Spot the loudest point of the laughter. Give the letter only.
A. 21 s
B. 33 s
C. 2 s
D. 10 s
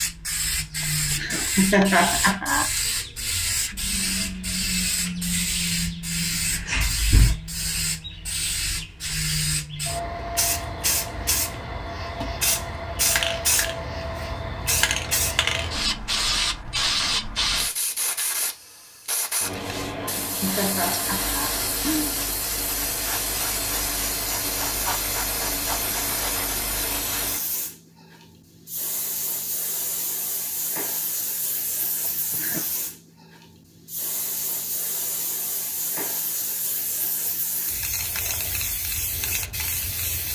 C.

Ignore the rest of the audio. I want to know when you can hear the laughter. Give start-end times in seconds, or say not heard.
1.1-2.7, 20.0-22.1, 32.0-32.6.